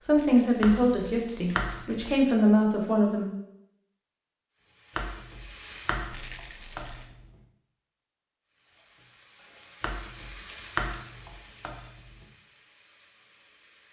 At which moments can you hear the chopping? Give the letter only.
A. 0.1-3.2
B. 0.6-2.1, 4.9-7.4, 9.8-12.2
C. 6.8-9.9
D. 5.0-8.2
B.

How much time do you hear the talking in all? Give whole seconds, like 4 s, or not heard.
3 s.